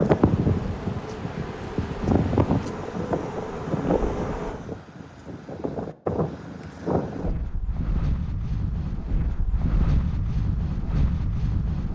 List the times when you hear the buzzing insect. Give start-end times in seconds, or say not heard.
0.2-4.5.